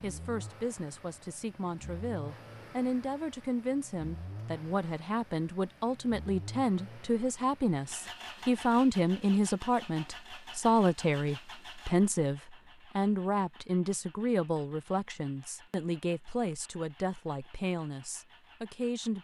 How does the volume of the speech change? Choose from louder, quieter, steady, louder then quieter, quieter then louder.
louder then quieter.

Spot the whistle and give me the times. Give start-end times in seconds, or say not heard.
not heard.